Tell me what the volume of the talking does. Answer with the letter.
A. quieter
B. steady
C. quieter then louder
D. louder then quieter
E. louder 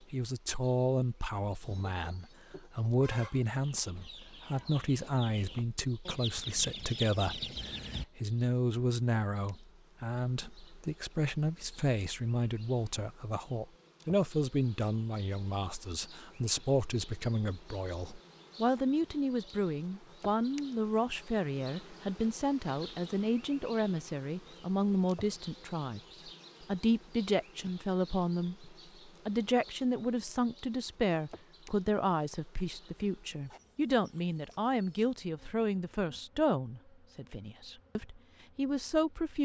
B.